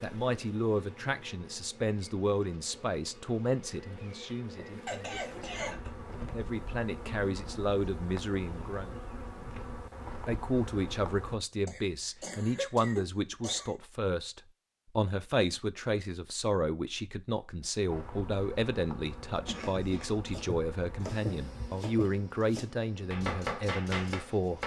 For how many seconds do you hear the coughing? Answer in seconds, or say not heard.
4 s.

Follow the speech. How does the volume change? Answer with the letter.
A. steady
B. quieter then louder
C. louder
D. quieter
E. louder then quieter
A.